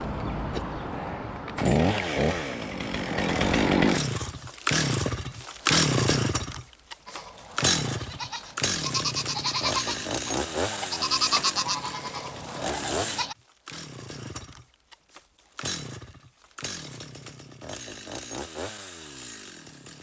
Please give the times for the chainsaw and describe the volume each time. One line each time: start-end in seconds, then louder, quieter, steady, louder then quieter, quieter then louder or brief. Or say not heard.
0.0-19.9 quieter.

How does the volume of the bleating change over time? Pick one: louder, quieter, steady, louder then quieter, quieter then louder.
louder then quieter.